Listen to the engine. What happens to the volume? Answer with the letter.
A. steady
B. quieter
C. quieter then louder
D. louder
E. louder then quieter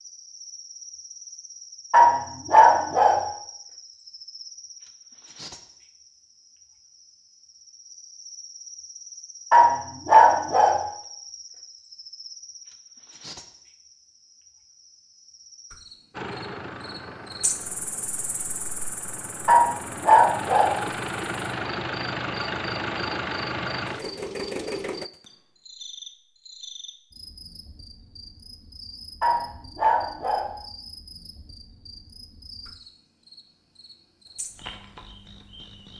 D.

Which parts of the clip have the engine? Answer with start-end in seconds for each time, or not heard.
16.1-25.1.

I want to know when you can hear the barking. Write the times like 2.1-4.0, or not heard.
1.9-3.2, 9.5-10.8, 19.4-20.8, 29.2-30.5.